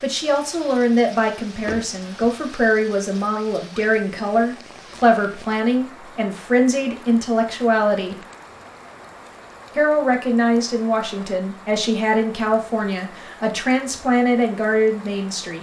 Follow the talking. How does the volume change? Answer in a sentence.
The volume of the talking stays about the same.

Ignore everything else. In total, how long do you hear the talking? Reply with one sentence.
The talking can be heard for 14 seconds in total.